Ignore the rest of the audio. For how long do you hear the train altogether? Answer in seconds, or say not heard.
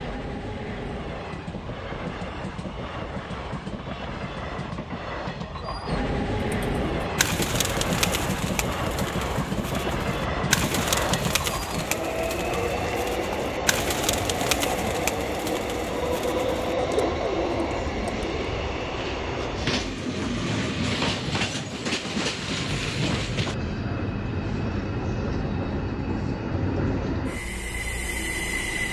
29 s.